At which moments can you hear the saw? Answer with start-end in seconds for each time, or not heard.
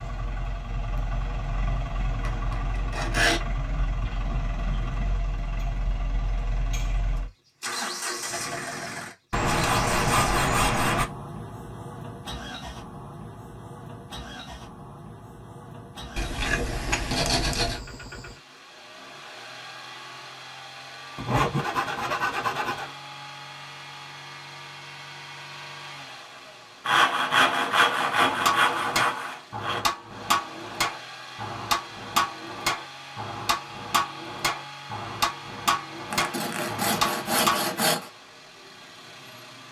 2.2-3.4, 9.3-11.1, 16.1-17.8, 21.1-22.9, 26.9-29.9, 36.1-38.1.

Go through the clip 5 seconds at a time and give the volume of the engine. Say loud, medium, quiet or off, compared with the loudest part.
loud, loud, medium, medium, medium, medium, medium, medium.